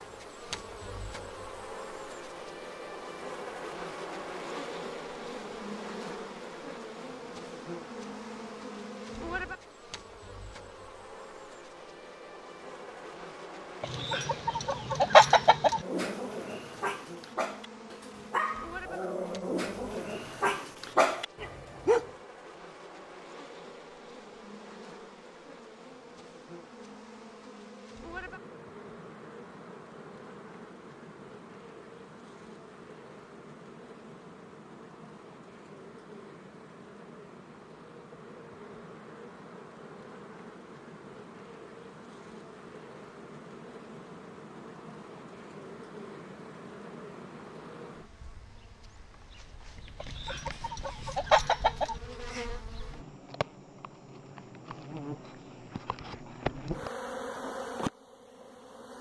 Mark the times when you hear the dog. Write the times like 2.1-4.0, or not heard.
15.8-22.1.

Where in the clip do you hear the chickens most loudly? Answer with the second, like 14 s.
15 s.